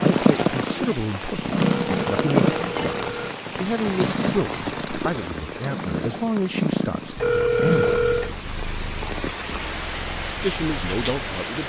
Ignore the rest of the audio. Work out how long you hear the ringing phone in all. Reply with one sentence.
You can hear the ringing phone for 3 seconds altogether.